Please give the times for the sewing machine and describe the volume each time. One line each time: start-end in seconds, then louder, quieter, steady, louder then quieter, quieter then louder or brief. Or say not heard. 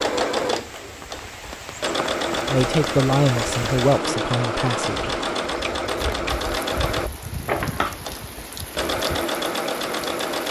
0.0-10.4 steady.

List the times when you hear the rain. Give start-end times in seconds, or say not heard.
0.0-10.4.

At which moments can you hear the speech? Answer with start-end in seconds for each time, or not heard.
2.5-5.1.